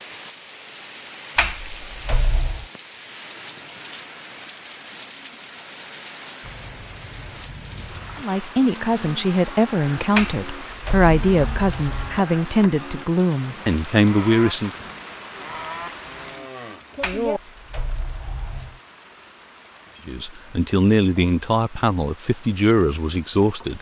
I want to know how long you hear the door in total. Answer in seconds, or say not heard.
5 s.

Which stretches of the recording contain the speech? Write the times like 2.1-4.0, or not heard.
8.2-14.7, 20.1-23.7.